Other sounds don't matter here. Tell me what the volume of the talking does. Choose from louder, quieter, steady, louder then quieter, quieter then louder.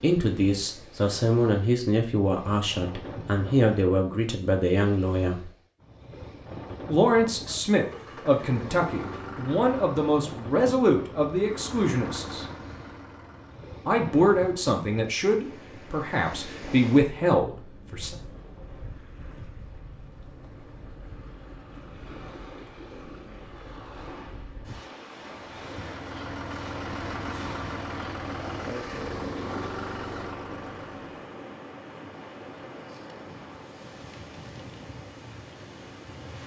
steady.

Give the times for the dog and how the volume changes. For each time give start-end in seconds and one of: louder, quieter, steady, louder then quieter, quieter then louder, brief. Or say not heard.
not heard.